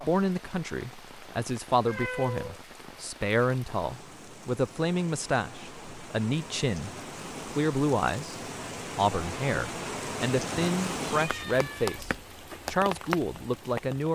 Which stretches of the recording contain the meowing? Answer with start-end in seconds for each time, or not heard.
1.8-2.6, 11.2-12.1.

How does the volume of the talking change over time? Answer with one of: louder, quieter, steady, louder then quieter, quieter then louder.
steady.